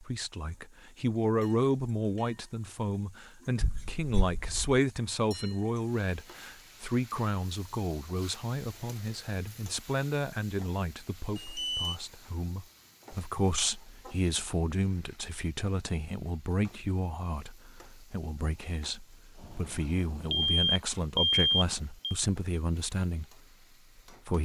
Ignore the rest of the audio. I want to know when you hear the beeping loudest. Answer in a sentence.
The volume of the beeping peaks at 21 seconds.